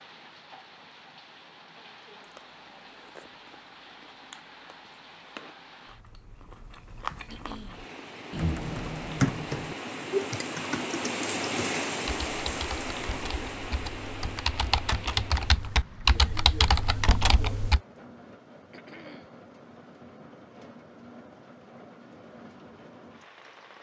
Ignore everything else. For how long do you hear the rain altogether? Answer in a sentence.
You can hear the rain for 24 seconds altogether.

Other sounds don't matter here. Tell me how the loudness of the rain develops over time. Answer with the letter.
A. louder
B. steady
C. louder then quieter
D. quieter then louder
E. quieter
C.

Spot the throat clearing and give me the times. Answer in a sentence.
You can hear the throat clearing from 7.2 to 8.5 s and from 18.7 to 19.4 s.